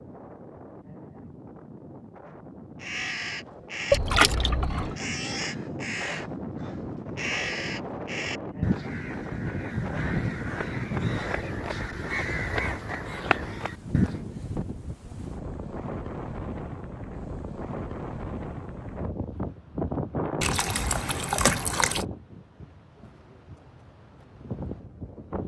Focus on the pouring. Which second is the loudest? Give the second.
4 s.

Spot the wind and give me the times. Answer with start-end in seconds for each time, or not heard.
0.0-25.4.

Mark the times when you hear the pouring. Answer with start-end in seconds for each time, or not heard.
3.9-5.0, 20.4-22.1.